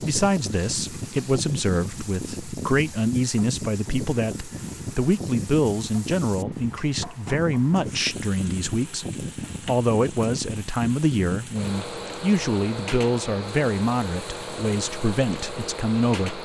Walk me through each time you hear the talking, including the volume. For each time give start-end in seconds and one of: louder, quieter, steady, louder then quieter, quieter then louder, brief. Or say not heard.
0.0-16.4 steady.